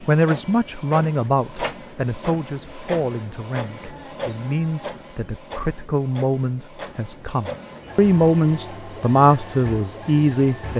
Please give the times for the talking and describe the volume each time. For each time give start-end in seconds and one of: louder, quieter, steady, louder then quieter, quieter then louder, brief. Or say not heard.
0.0-10.7 quieter then louder.